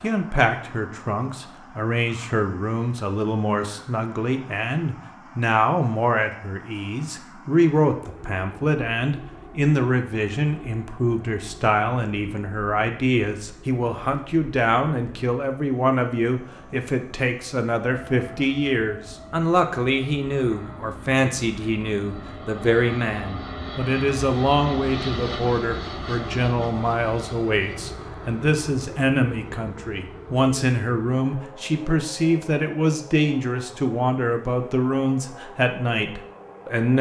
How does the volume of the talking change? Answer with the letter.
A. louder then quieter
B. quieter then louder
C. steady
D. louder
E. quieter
C.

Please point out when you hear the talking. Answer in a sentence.
You can hear the talking from 0.0 to 36.9 s.